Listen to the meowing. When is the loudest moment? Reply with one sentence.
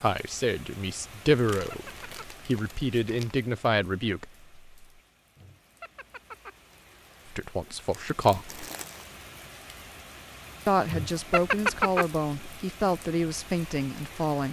The loudest moment of the meowing is at 12 seconds.